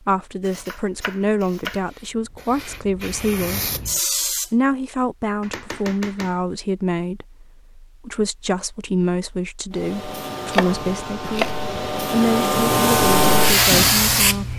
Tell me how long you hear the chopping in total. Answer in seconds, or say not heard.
4 s.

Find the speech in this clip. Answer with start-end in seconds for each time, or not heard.
0.1-3.7, 4.5-14.5.